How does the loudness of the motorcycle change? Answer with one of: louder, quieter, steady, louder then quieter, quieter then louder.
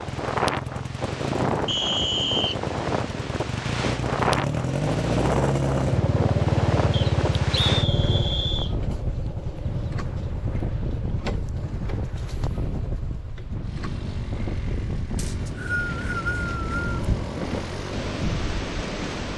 louder then quieter.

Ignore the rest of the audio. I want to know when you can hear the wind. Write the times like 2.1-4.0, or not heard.
0.0-19.3.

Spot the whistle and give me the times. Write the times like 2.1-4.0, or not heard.
1.6-2.5, 6.9-8.8, 15.2-16.9.